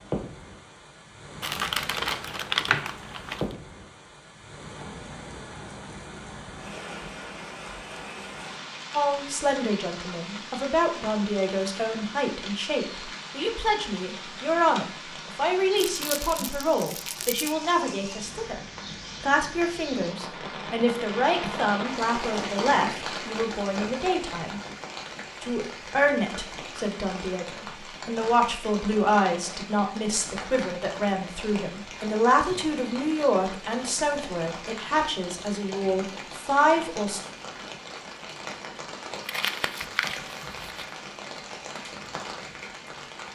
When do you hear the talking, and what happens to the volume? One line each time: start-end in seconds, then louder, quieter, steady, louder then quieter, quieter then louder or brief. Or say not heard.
8.9-24.6 steady
25.4-37.2 steady.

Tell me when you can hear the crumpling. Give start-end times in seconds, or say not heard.
1.4-3.5, 15.8-17.6, 39.1-40.9.